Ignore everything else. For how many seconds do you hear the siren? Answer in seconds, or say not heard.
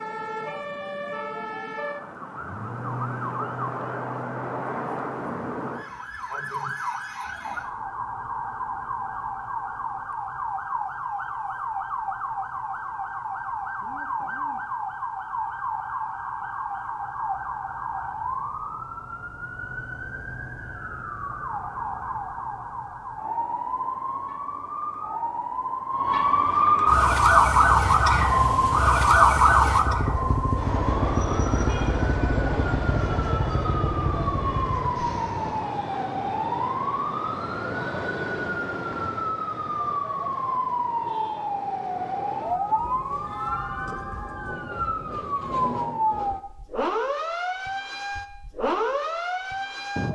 50 s.